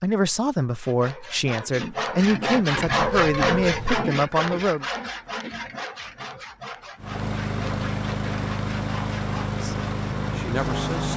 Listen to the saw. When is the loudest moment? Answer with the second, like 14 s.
3 s.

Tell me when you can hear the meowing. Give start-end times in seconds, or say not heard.
2.9-4.0.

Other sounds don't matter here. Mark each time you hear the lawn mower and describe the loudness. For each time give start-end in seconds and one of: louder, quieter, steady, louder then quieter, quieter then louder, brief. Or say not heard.
7.0-11.1 steady.